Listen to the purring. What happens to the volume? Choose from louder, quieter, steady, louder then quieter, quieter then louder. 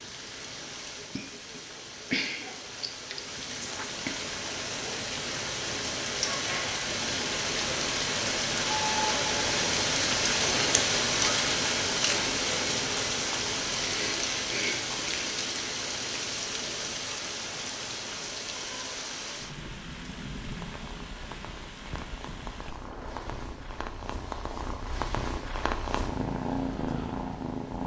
louder.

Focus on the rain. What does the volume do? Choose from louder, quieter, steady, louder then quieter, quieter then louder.
louder then quieter.